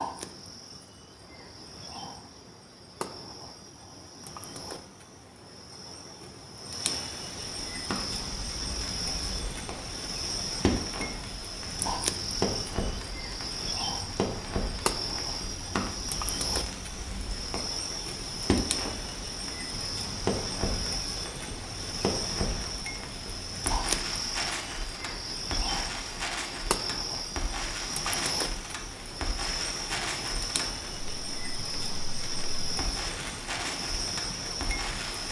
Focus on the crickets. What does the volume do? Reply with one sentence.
The volume of the crickets goes up.